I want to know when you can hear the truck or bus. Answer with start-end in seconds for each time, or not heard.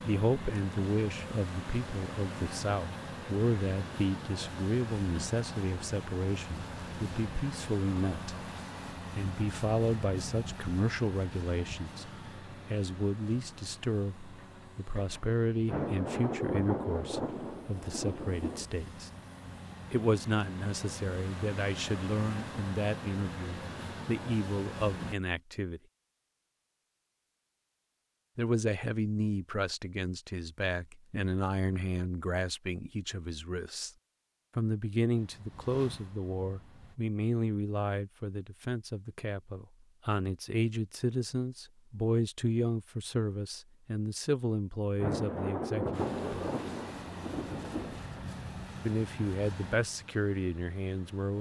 0.0-25.1, 35.1-37.0, 45.9-51.3.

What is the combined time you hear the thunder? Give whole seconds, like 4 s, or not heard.
6 s.